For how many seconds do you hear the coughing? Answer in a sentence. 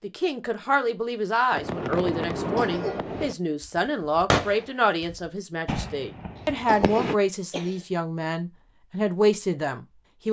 You can hear the coughing for 2 seconds altogether.